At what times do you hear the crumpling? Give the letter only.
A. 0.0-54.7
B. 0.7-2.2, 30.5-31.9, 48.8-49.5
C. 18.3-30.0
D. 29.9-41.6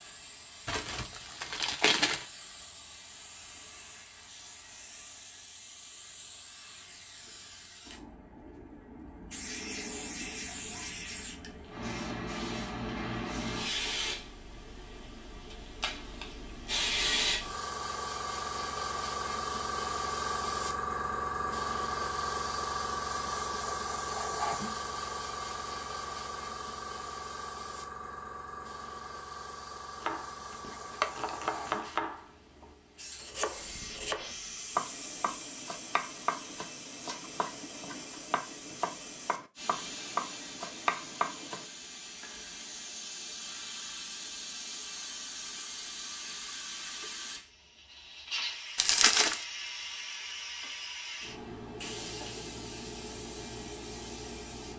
B.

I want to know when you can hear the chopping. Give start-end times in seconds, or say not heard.
29.9-41.6.